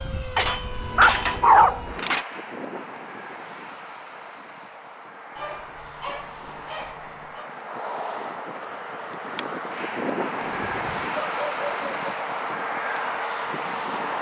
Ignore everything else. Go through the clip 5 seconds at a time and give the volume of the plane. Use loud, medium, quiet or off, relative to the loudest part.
medium, medium, loud.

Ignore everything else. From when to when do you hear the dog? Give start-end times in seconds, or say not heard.
0.3-2.2, 5.3-7.5, 10.4-12.1.